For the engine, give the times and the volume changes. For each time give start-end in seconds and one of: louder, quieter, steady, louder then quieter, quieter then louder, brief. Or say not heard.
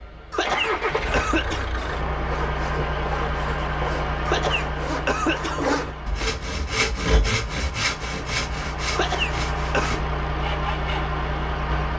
0.0-11.9 quieter then louder.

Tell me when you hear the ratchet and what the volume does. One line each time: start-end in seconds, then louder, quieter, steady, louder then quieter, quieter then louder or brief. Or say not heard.
not heard.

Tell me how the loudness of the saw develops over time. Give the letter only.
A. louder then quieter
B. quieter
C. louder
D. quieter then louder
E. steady
A.